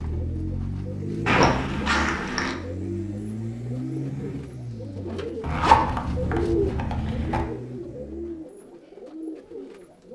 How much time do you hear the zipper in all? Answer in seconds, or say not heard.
3 s.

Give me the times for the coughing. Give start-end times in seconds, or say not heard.
not heard.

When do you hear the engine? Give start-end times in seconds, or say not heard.
0.0-8.6.